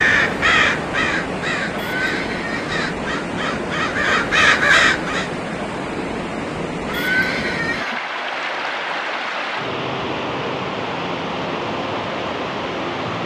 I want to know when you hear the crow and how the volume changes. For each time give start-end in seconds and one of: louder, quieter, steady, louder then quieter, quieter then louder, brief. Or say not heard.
0.0-5.3 quieter then louder.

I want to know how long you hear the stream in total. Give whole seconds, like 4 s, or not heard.
13 s.